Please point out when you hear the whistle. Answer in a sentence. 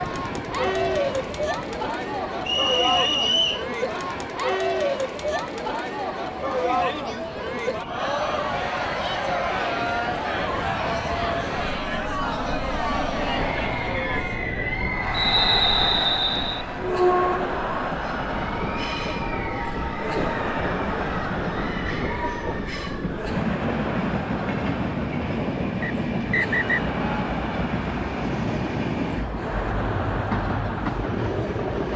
You can hear the whistle from 2.5 to 3.6 s, from 15.1 to 16.6 s and from 25.8 to 26.9 s.